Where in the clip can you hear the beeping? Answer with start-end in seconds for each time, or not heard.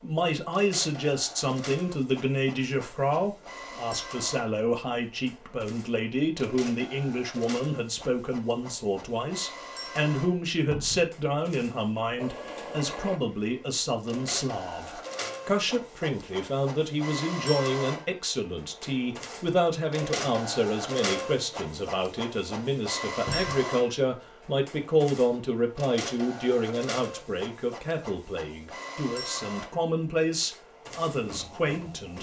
not heard.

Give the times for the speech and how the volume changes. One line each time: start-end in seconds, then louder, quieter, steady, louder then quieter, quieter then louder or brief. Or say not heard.
0.0-32.1 steady.